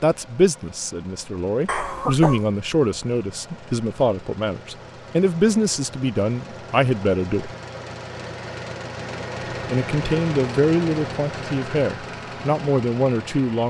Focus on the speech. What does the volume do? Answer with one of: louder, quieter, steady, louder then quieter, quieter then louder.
steady.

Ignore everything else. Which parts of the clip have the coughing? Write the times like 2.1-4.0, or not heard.
1.6-2.5.